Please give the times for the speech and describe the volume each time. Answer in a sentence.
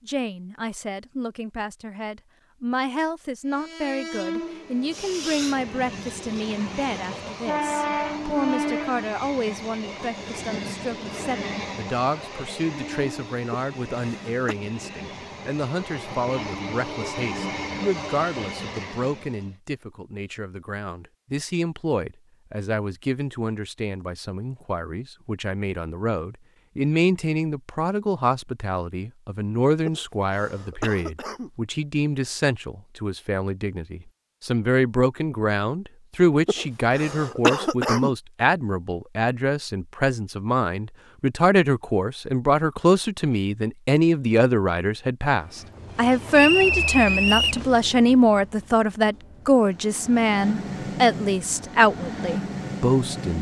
You can hear the speech from 0.1 to 53.3 s, getting louder.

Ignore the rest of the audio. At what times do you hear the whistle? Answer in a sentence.
You can hear the whistle from 46.4 to 47.6 s.